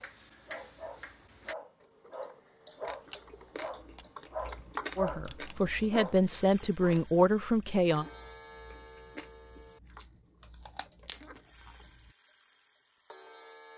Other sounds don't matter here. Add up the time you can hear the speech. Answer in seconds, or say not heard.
3 s.